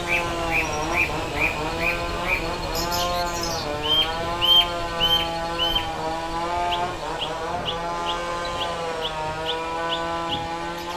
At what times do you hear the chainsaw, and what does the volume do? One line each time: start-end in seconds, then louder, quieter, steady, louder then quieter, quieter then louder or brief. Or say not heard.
0.0-10.9 steady.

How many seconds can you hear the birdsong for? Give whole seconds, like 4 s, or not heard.
11 s.